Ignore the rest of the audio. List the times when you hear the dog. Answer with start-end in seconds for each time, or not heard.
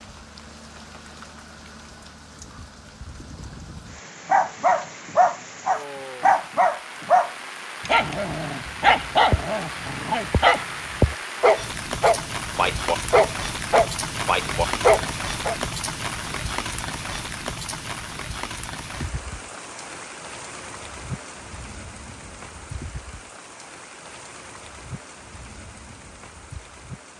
4.2-15.6.